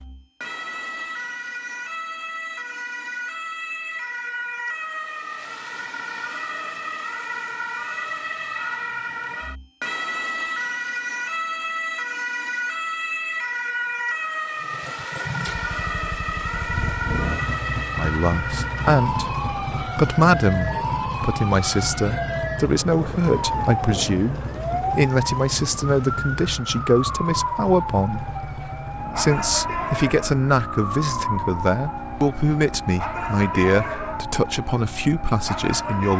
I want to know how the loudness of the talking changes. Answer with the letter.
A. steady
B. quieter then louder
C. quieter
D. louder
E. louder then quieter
A.